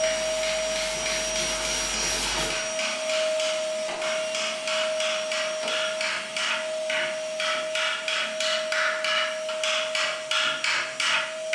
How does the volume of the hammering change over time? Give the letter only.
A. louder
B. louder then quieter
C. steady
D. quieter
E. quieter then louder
A.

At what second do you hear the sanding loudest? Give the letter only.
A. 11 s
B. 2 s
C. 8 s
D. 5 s
B.